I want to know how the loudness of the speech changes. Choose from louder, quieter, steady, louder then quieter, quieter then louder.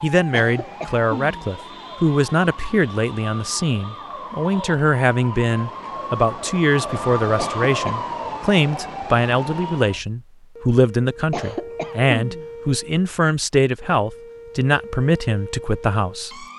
steady.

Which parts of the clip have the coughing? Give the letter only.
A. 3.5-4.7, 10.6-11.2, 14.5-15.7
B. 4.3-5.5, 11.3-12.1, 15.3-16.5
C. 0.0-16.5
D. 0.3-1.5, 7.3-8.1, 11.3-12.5
D.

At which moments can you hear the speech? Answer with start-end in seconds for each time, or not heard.
0.0-16.5.